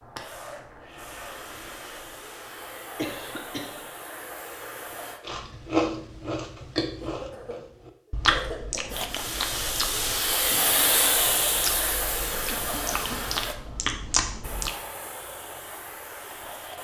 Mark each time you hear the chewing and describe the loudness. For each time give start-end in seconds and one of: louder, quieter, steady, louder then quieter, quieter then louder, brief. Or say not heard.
5.2-14.7 quieter then louder.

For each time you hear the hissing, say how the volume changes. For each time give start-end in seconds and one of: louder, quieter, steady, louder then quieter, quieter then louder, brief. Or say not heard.
0.0-5.2 steady
8.9-16.7 quieter.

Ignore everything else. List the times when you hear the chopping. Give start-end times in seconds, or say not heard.
not heard.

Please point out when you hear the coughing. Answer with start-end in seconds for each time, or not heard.
3.0-3.8, 7.0-9.0, 12.4-13.2.